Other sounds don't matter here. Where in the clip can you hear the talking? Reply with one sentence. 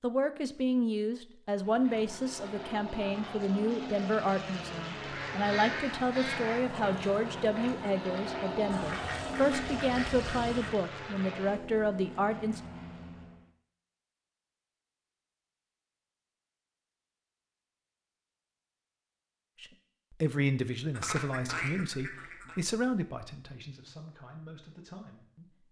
You can hear the talking from 0.0 to 12.6 s and from 19.6 to 25.6 s.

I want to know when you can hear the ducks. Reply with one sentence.
You can hear the ducks from 5.0 to 6.7 s, from 8.7 to 10.7 s and from 20.9 to 22.6 s.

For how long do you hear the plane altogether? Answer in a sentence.
You can hear the plane for 12 seconds altogether.